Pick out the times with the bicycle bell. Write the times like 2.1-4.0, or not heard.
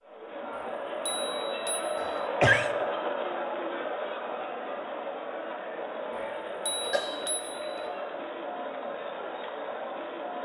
0.5-2.2, 6.1-7.8.